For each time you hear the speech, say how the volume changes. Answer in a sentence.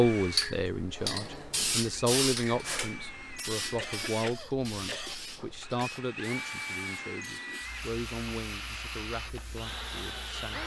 You can hear the speech from 0.0 to 10.6 s, getting quieter.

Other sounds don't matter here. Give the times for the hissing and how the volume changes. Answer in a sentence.
The hissing can be heard from 0.0 to 10.6 s, getting quieter.